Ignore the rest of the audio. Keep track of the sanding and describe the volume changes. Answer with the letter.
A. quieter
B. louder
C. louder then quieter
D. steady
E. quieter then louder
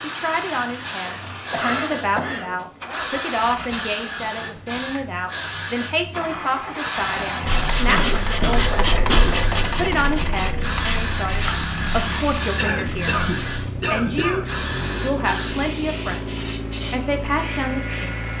A.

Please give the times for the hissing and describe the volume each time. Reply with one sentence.
You can hear the hissing from 0.0 to 18.3 s, at a steady volume.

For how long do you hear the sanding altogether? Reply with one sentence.
The sanding can be heard for 6 seconds in total.